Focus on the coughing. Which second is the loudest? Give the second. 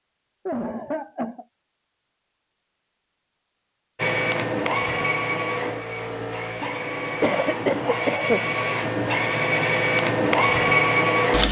8 s.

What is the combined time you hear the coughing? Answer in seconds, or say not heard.
2 s.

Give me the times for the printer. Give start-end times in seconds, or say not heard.
4.0-11.4.